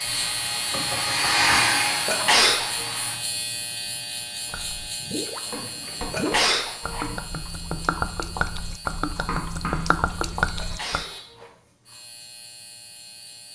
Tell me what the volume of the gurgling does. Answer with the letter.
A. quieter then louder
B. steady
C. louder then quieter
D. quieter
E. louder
E.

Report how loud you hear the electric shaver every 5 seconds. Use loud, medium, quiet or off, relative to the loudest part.
loud, medium, quiet.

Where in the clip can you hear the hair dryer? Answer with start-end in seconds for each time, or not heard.
0.0-3.1.